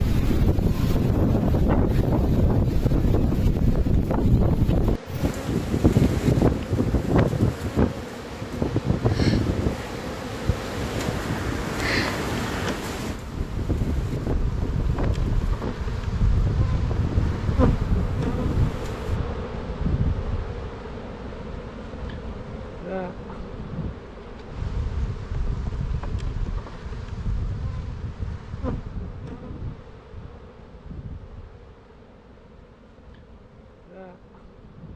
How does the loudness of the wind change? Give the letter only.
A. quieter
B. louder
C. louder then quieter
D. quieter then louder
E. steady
A.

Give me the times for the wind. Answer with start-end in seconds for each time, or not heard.
0.0-19.2.